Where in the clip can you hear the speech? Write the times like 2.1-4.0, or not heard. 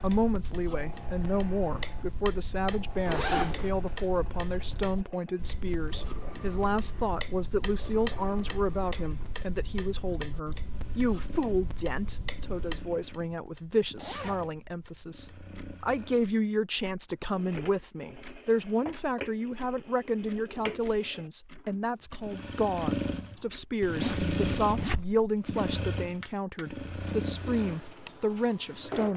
0.0-29.1.